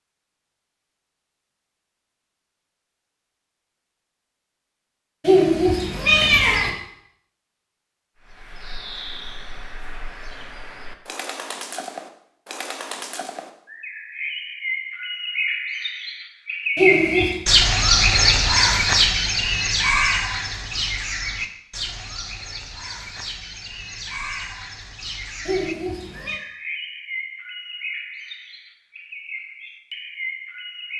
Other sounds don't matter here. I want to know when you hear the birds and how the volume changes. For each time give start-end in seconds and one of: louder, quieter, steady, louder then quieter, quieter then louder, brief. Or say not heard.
8.2-30.9 louder then quieter.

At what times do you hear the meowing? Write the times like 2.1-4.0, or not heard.
5.2-6.7, 16.8-17.4, 25.4-26.4.